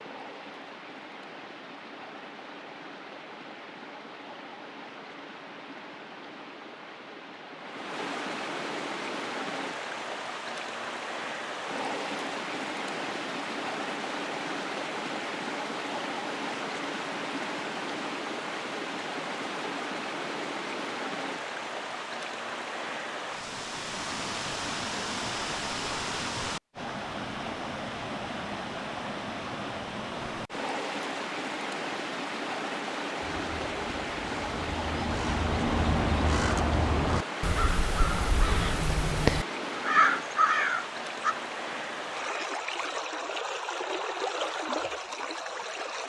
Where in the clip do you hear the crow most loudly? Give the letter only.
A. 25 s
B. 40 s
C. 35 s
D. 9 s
B.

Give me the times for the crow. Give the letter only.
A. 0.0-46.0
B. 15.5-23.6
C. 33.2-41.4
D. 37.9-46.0
C.